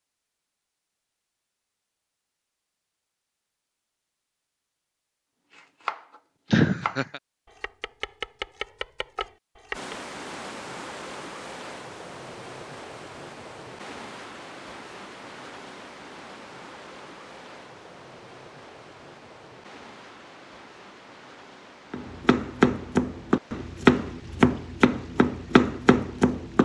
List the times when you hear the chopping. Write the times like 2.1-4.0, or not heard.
5.5-9.9, 21.9-26.5.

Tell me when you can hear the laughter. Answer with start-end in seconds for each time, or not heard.
6.5-7.2.